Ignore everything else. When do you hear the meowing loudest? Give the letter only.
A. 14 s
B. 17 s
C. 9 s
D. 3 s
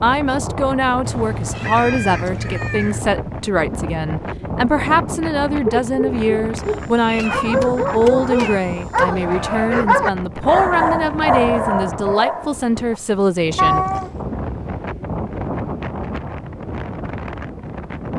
A.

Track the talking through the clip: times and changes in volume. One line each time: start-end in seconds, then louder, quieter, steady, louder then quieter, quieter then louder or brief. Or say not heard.
0.0-13.8 steady.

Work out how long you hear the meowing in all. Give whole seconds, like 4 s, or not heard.
5 s.